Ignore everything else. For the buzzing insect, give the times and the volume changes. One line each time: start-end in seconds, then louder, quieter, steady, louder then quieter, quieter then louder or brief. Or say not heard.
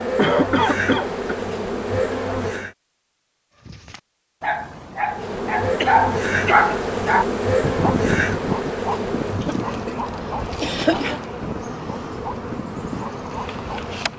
0.0-2.8 brief
5.0-14.1 quieter.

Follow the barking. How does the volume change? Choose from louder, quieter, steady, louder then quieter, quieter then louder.
louder then quieter.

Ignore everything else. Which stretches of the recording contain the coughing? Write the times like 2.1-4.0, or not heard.
0.1-1.4, 5.8-6.8, 9.4-10.0, 10.6-11.2.